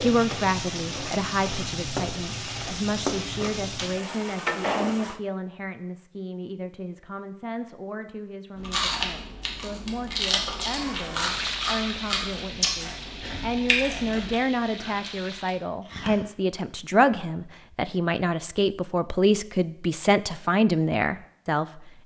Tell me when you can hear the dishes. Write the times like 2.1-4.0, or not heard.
not heard.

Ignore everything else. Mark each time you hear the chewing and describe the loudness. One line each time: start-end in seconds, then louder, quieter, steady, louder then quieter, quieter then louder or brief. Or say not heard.
8.6-16.2 quieter.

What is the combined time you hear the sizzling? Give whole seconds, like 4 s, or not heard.
10 s.